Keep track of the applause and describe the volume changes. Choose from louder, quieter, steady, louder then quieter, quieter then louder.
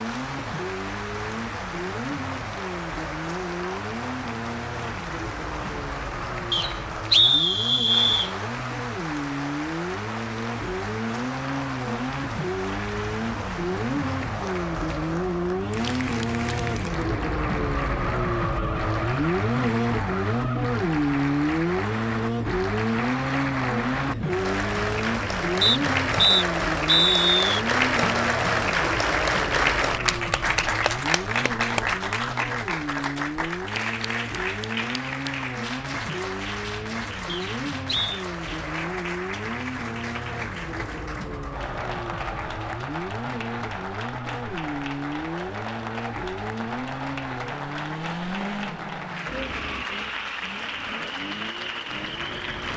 louder then quieter.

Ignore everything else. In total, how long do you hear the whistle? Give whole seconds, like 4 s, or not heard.
5 s.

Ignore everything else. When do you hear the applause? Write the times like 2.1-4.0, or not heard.
0.0-52.7.